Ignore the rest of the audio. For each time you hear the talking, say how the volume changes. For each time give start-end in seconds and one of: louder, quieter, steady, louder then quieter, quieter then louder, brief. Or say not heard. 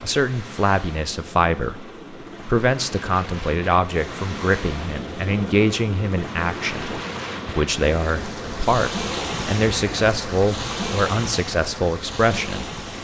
0.0-12.7 steady.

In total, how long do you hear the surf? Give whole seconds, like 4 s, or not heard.
13 s.